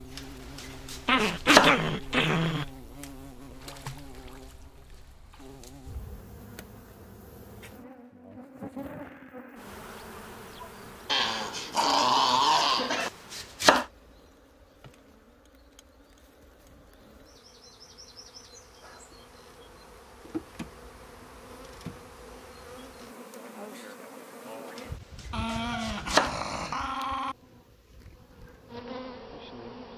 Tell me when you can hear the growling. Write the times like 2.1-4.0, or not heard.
1.1-2.7, 11.1-13.1, 25.3-27.4.